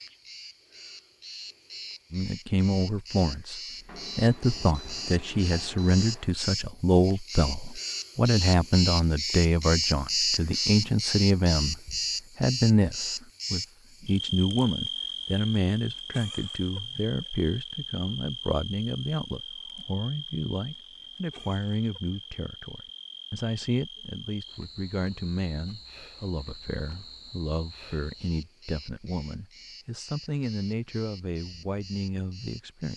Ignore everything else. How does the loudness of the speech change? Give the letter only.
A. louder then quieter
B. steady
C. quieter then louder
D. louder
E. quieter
E.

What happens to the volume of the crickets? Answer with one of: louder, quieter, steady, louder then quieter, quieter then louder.
louder then quieter.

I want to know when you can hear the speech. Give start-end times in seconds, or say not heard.
2.1-32.9.